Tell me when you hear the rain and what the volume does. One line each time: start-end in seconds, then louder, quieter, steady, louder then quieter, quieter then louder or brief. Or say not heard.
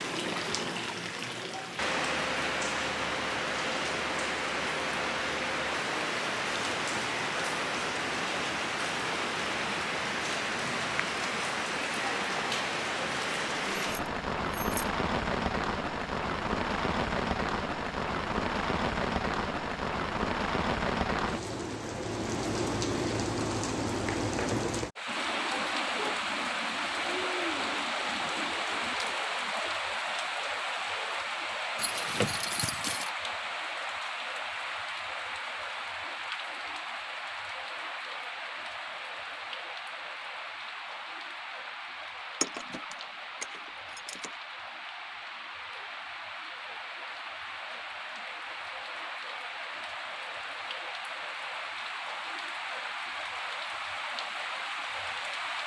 0.0-55.6 quieter.